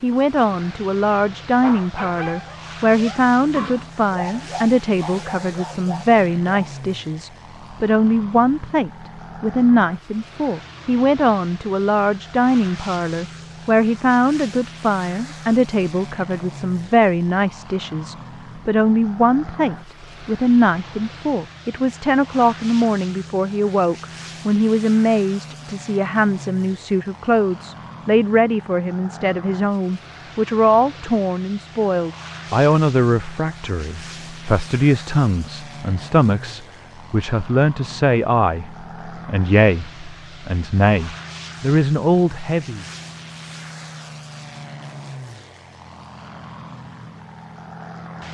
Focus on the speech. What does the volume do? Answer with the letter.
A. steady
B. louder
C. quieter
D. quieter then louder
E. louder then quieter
A.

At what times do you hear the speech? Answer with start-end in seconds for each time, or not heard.
0.0-42.9.